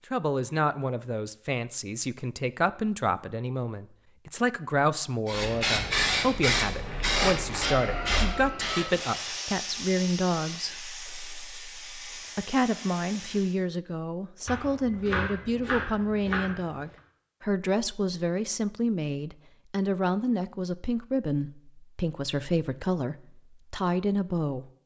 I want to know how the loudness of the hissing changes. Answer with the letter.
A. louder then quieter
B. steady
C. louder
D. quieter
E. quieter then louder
D.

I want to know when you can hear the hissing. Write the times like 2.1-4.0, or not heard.
5.2-13.6.